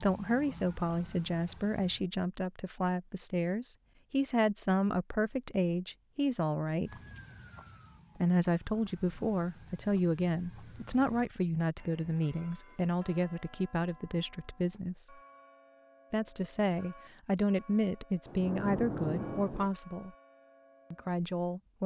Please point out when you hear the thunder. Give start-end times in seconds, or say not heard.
18.2-19.7.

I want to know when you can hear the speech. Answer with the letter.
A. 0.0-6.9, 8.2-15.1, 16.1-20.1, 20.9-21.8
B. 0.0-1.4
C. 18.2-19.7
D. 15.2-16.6
A.